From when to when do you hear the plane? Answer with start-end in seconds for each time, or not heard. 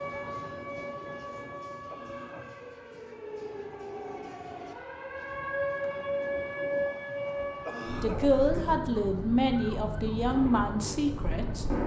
10.2-11.8.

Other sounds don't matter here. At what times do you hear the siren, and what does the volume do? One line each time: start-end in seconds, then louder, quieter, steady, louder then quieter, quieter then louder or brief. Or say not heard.
0.0-11.8 louder then quieter.